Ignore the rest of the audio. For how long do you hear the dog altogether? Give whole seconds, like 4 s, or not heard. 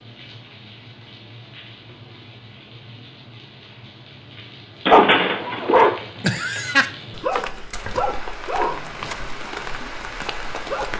6 s.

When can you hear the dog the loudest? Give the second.
5 s.